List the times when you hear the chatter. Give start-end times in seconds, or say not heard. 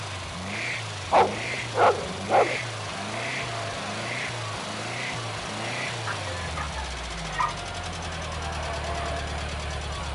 2.5-10.0.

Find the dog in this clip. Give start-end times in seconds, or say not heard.
1.1-2.6, 6.0-7.5.